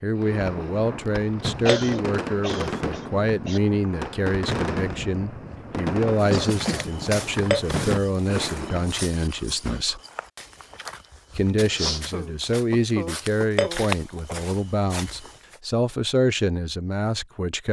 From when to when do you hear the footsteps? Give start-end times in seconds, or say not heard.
6.3-15.6.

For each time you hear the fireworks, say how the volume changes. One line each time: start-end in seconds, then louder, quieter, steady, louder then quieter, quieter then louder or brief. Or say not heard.
0.1-9.0 steady.